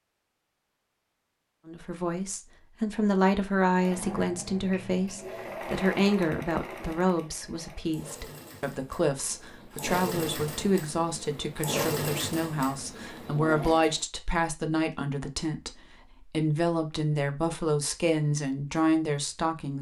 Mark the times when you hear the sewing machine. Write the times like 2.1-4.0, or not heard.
3.8-14.0.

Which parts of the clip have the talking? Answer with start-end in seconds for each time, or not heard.
1.6-19.7.